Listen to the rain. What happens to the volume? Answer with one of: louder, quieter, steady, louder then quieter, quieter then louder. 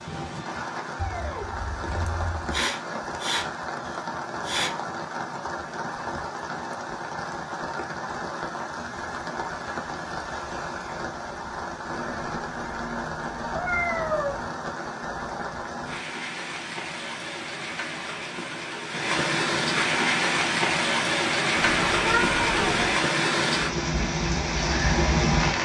louder.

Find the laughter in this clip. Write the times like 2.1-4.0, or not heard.
not heard.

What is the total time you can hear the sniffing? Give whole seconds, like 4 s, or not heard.
3 s.